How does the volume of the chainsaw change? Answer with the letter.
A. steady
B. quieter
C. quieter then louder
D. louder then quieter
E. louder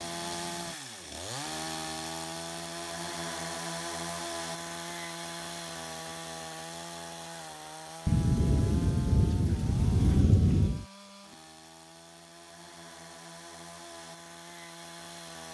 B.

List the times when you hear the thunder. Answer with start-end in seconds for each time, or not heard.
8.1-10.8.